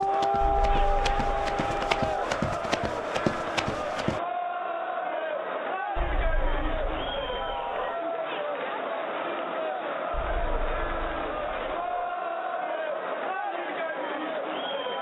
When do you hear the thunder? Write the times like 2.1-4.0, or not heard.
not heard.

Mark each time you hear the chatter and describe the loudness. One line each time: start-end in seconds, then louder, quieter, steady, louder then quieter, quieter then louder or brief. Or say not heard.
0.0-14.9 steady.